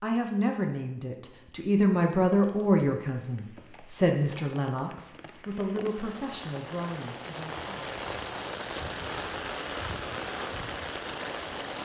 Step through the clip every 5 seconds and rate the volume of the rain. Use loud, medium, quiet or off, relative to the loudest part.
quiet, loud, loud.